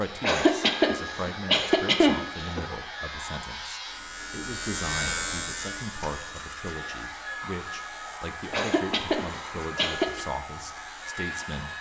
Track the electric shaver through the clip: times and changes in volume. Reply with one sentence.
You can hear the electric shaver from 0.0 to 11.7 s, getting louder then quieter.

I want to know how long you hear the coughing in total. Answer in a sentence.
The coughing can be heard for 4 seconds in total.